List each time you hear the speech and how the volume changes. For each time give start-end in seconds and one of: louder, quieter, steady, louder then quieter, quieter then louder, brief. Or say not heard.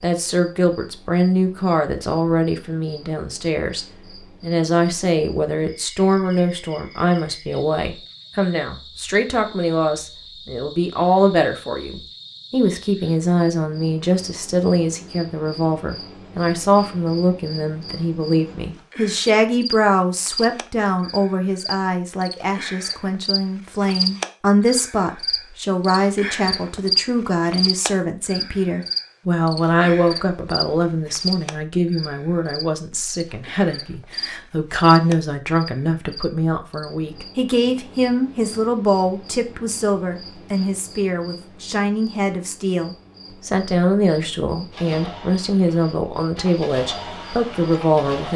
0.0-48.3 steady.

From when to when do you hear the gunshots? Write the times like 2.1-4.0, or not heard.
not heard.